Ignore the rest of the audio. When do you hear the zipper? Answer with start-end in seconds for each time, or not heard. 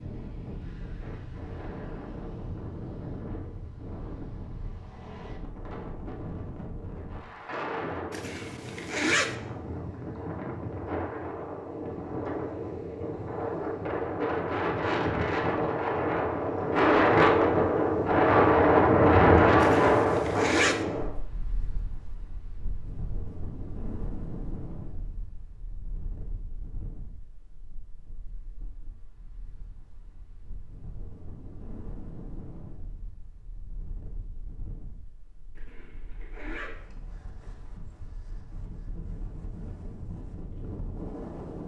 8.1-9.3, 19.6-20.9, 35.5-36.8.